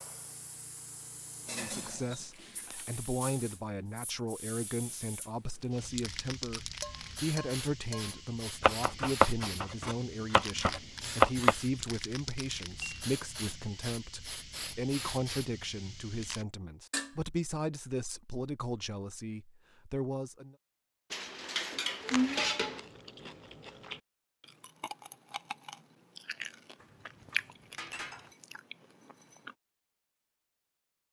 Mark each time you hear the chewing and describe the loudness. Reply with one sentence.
The chewing can be heard from 22.1 to 29.6 s, getting louder then quieter.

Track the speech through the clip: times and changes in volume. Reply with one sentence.
The speech can be heard from 1.4 to 20.6 s, at a steady volume.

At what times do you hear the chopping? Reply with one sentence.
You can hear the chopping from 8.6 to 11.6 s.